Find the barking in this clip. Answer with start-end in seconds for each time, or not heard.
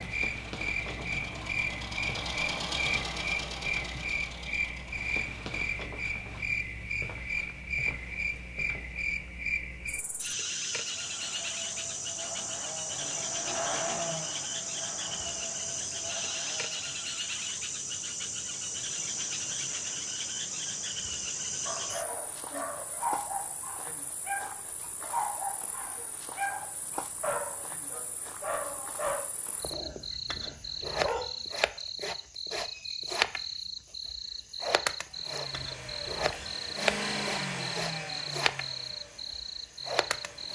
21.6-31.2.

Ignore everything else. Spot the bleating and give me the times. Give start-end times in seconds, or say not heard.
not heard.